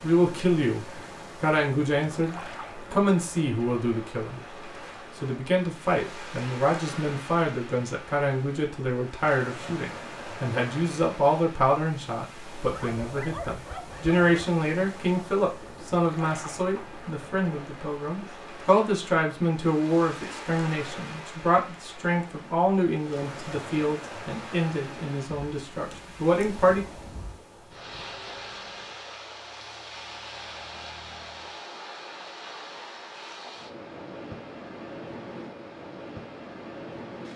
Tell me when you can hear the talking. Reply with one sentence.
You can hear the talking from 0.0 to 4.4 s and from 5.2 to 26.9 s.